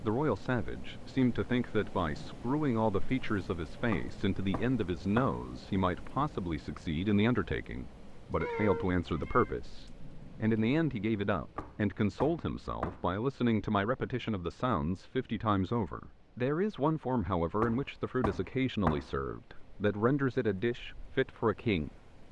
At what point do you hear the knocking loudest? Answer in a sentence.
The volume of the knocking peaks at 19 seconds.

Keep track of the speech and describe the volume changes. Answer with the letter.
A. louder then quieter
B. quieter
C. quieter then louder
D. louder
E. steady
E.